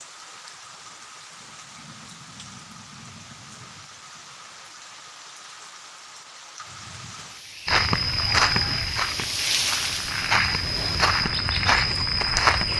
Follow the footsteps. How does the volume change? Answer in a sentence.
The volume of the footsteps goes down, then up.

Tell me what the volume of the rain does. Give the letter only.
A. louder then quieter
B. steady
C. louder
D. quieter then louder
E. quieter
C.